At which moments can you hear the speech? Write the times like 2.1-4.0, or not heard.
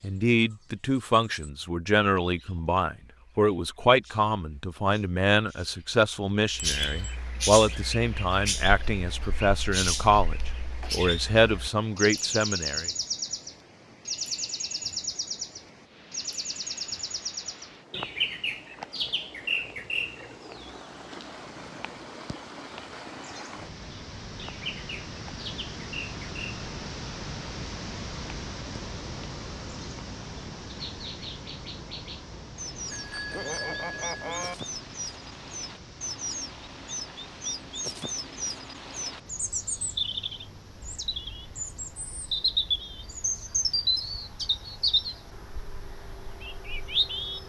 0.0-12.8.